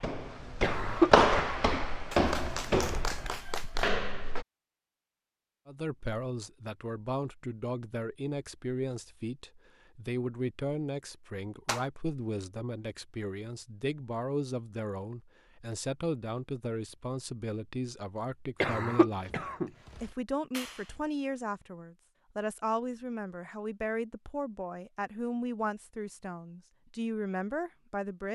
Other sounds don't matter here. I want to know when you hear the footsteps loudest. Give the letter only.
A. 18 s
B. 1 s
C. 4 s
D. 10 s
B.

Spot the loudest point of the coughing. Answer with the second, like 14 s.
1 s.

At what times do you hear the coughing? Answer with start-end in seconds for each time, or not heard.
0.6-1.6, 18.6-19.7.